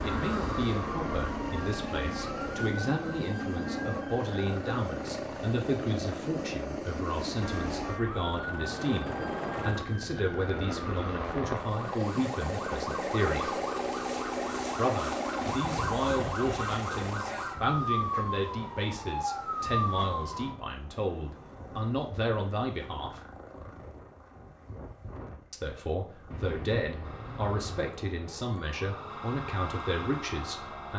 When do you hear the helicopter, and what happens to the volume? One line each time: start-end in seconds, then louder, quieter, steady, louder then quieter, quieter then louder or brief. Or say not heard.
0.0-30.9 quieter.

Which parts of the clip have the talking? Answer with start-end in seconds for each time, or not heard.
0.0-13.6, 14.8-23.2, 25.5-30.9.